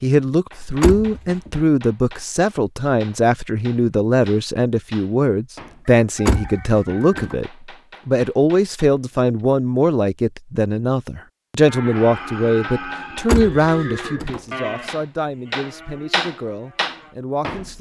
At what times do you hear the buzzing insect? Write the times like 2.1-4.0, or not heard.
not heard.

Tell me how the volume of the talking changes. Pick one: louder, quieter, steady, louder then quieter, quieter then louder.
quieter.